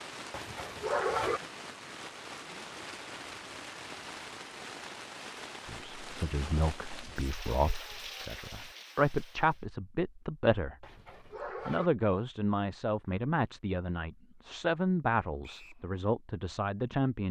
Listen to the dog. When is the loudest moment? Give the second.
1 s.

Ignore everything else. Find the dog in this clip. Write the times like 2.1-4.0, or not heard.
0.3-1.4, 10.8-11.9.